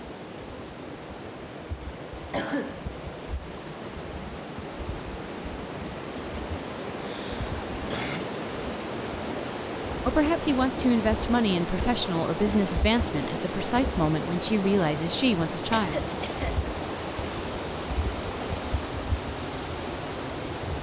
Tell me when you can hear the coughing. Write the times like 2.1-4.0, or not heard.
2.3-2.8, 7.0-8.2, 15.7-16.6.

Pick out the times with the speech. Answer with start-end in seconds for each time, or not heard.
10.1-16.0.